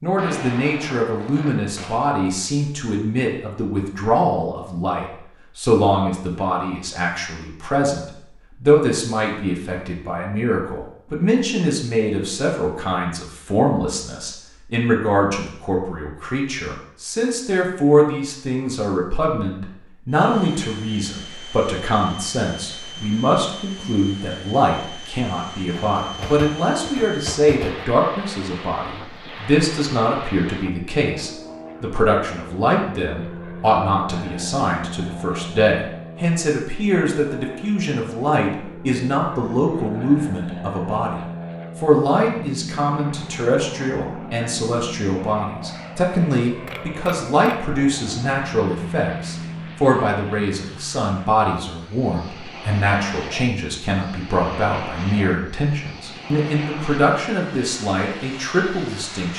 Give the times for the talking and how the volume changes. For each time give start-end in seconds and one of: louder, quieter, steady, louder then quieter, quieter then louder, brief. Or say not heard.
0.0-59.3 steady.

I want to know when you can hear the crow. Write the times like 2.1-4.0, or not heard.
not heard.